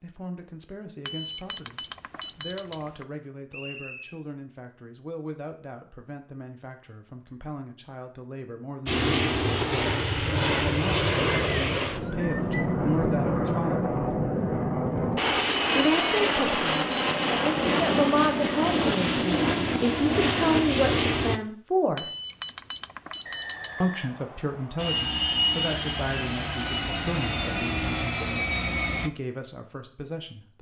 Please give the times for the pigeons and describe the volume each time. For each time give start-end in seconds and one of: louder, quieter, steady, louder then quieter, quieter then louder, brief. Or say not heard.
not heard.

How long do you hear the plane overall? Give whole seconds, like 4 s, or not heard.
17 s.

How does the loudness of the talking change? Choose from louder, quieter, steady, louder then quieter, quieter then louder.
louder then quieter.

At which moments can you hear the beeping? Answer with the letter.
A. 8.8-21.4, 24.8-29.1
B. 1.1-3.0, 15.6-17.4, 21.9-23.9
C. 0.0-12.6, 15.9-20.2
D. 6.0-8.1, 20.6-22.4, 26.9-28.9
B.